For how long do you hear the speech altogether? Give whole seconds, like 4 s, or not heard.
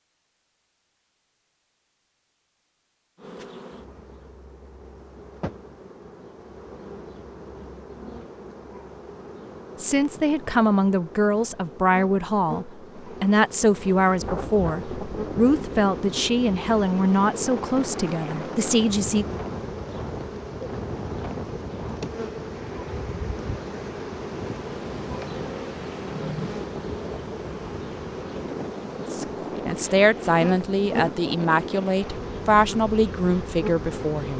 15 s.